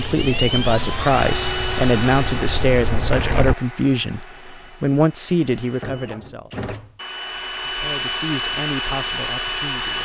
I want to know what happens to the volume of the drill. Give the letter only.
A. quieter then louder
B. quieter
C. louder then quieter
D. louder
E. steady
A.